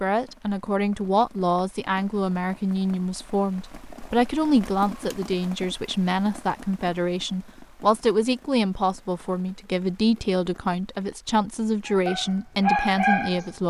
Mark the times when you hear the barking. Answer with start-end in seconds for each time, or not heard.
11.8-13.5.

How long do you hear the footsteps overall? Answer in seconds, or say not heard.
not heard.